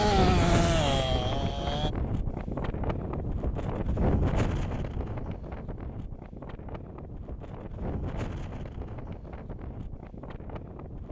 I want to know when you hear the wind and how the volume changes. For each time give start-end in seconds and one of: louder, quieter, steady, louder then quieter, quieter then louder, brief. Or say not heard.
0.0-11.0 quieter.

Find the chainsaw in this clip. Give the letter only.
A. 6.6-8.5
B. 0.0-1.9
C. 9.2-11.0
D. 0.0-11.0
B.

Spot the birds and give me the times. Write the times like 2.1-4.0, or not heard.
not heard.